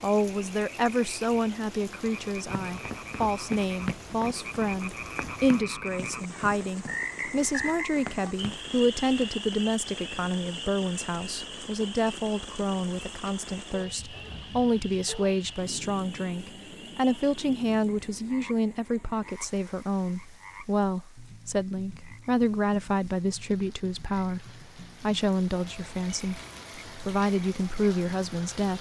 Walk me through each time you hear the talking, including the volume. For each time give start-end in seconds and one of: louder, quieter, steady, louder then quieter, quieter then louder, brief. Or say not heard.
0.0-28.7 steady.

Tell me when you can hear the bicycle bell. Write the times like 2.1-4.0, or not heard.
not heard.